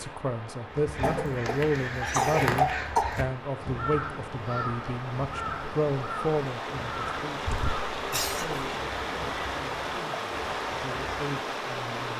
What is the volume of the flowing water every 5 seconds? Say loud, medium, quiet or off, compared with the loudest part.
medium, loud, loud.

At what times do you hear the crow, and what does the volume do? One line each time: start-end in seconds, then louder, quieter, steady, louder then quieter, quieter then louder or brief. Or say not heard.
0.7-11.3 quieter.